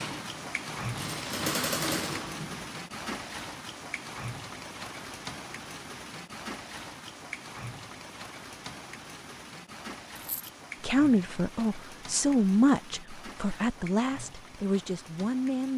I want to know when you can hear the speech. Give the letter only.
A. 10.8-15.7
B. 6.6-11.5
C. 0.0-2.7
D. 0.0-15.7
A.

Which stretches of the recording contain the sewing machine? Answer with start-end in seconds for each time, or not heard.
0.0-2.7.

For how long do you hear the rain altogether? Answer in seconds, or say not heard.
16 s.